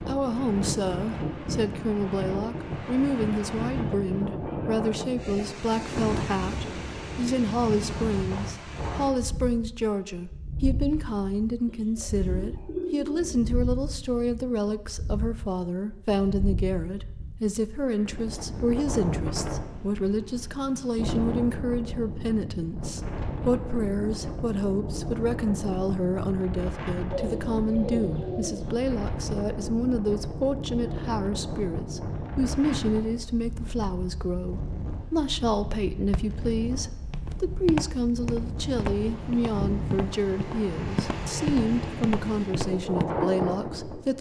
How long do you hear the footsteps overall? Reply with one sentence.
The footsteps can be heard for 7 seconds in total.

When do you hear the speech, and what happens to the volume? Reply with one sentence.
The speech can be heard from 0.0 to 44.1 s, at a steady volume.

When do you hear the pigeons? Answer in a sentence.
You can hear the pigeons from 11.7 to 13.4 s and from 27.1 to 28.8 s.